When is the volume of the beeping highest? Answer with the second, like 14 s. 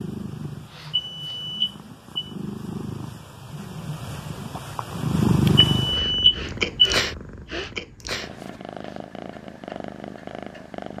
6 s.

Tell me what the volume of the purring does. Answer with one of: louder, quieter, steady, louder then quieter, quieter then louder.
louder then quieter.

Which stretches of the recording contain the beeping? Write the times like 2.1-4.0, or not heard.
0.9-2.3, 5.8-7.0.